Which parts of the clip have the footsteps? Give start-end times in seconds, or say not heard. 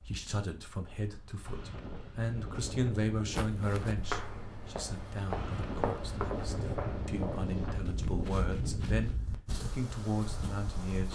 3.3-9.2.